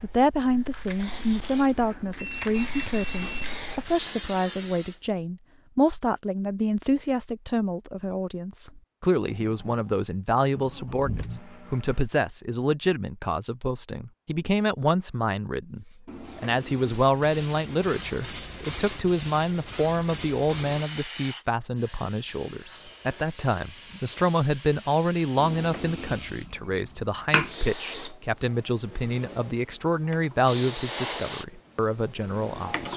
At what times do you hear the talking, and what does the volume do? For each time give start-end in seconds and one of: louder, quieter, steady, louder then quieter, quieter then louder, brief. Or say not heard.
0.0-32.9 steady.